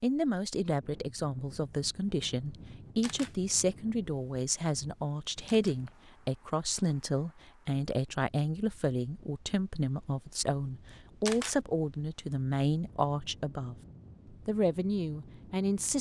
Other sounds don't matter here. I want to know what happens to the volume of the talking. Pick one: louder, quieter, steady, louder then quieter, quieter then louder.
steady.